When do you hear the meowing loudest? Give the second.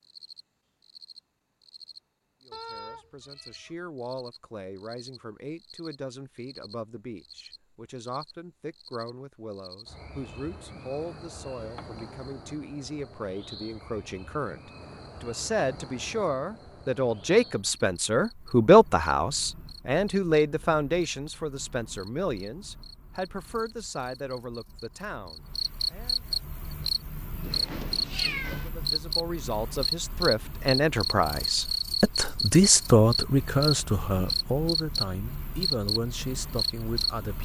28 s.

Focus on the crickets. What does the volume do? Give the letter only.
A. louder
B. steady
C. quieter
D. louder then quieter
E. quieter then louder
A.